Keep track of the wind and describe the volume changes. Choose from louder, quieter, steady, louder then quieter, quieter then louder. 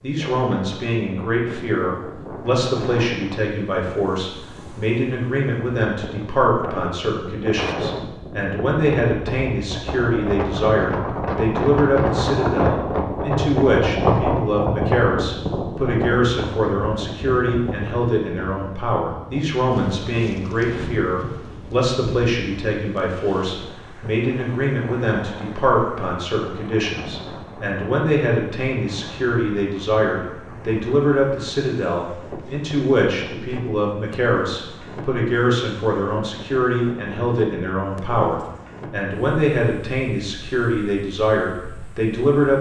louder then quieter.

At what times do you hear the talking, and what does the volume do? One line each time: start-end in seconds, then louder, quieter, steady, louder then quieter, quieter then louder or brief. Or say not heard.
0.0-42.5 steady.